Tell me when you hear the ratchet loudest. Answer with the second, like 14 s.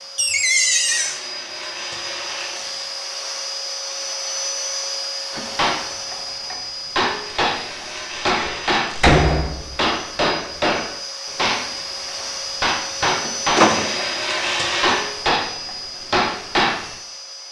15 s.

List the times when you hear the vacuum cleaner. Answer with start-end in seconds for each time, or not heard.
0.0-17.4.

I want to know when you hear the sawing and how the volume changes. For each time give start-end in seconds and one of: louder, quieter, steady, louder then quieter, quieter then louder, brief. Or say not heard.
not heard.